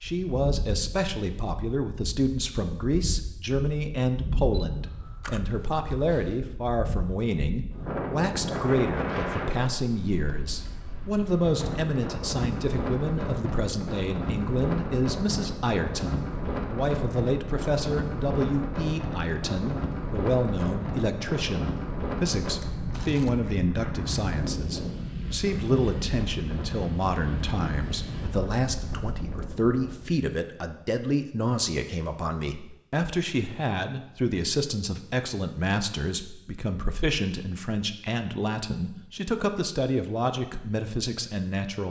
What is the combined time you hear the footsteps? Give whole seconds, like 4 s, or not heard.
not heard.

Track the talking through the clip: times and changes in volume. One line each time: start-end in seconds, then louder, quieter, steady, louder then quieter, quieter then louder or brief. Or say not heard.
0.0-41.8 steady.